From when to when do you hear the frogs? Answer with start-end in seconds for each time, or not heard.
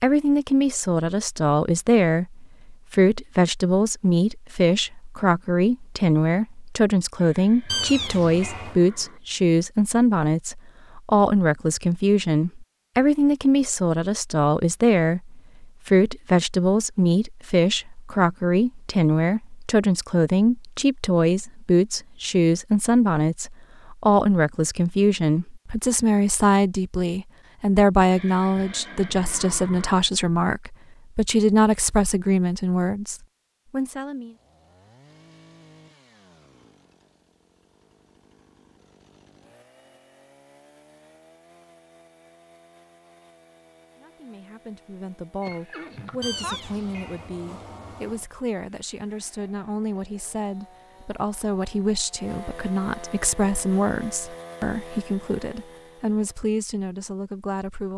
not heard.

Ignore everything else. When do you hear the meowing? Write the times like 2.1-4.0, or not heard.
7.7-8.8, 46.2-48.2.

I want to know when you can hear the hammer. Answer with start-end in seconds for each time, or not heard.
not heard.